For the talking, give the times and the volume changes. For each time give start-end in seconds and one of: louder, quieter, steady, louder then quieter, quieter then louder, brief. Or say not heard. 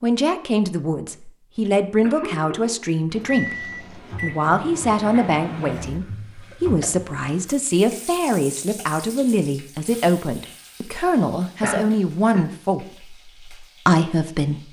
0.0-14.6 steady.